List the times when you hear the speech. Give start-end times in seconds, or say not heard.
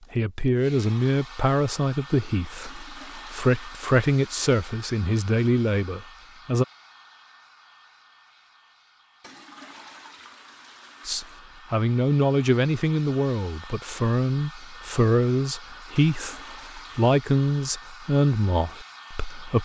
0.1-6.7, 11.1-19.5.